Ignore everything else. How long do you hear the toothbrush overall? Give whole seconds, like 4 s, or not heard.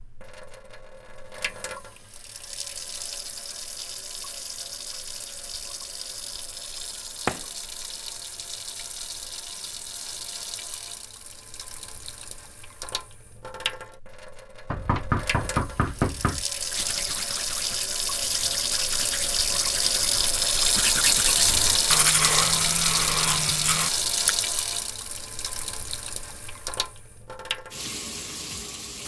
8 s.